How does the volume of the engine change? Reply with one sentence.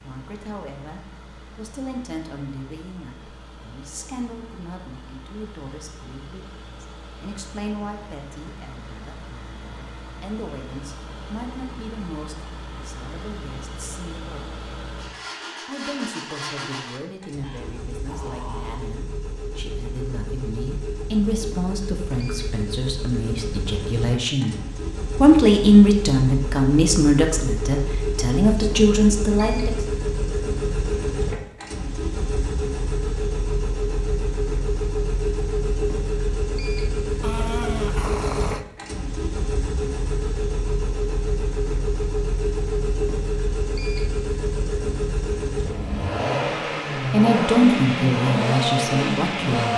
The loudness of the engine goes up.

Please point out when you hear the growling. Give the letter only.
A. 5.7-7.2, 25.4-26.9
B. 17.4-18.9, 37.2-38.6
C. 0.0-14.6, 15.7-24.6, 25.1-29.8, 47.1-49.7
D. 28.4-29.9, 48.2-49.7
B.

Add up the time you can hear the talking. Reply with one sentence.
The talking can be heard for 31 seconds in total.